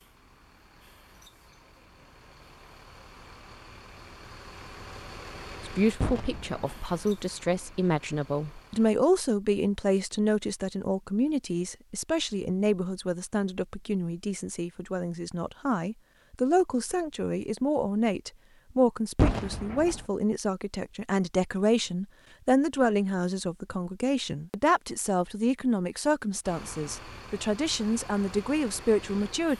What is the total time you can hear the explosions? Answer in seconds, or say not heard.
2 s.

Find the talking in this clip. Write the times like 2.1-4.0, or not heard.
5.7-29.5.